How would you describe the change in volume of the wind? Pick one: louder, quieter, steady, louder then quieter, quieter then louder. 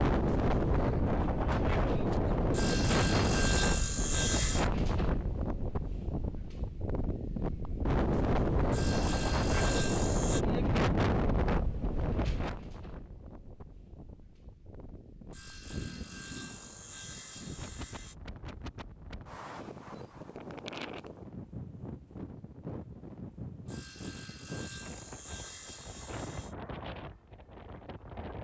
quieter.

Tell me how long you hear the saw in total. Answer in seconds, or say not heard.
10 s.